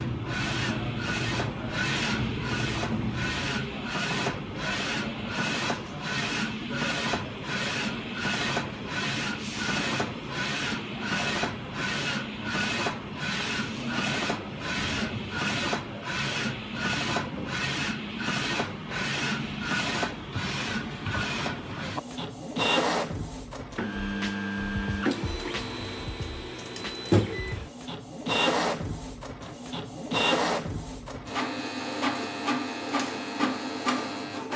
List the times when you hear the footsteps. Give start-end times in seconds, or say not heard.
not heard.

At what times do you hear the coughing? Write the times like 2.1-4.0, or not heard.
not heard.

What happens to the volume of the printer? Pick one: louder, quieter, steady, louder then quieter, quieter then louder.
steady.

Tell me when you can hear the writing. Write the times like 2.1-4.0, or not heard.
0.0-3.4.